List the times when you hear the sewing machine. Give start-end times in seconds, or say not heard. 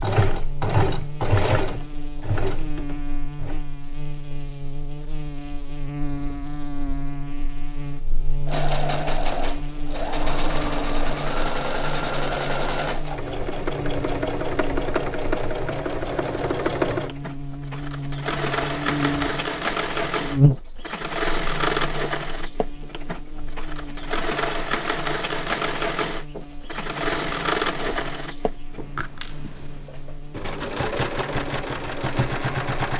0.0-3.6, 8.4-32.9.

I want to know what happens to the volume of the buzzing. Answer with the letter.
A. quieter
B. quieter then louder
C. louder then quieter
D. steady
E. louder
C.